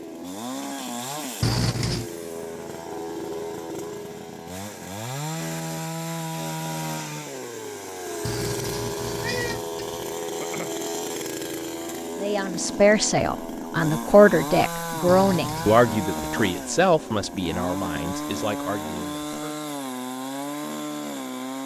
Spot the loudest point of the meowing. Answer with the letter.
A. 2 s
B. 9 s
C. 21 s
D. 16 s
A.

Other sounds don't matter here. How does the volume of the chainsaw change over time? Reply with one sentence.
The volume of the chainsaw stays about the same.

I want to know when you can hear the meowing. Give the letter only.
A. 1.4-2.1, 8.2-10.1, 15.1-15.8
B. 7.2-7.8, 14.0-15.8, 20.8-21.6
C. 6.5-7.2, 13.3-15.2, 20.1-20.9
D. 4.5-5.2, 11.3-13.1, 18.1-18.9
A.